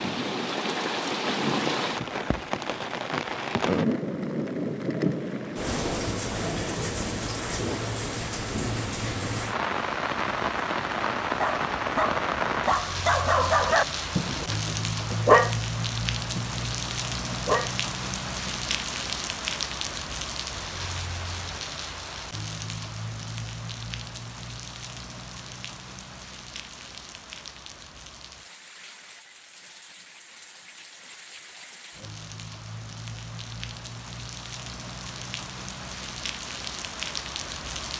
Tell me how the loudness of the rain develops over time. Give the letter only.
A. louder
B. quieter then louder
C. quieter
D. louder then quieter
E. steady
C.